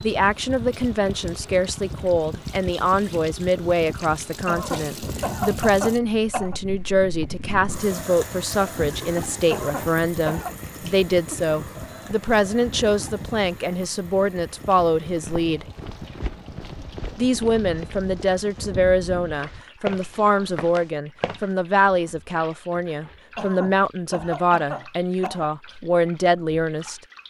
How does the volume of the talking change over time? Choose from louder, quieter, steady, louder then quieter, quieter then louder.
steady.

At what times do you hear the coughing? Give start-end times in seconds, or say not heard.
4.5-6.6, 9.5-10.6, 23.4-25.5.